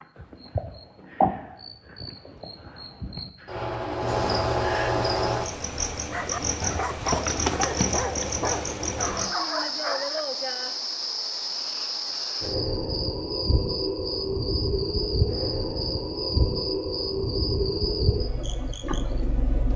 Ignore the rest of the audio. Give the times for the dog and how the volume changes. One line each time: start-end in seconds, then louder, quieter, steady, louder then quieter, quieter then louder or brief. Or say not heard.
6.0-10.2 steady.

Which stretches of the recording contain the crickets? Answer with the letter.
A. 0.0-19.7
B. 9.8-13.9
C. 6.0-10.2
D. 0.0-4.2
A.